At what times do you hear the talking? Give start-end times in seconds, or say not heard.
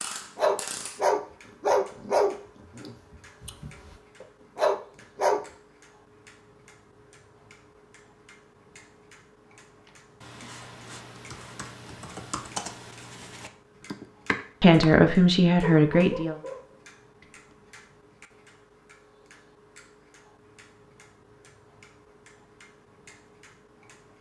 14.6-16.4.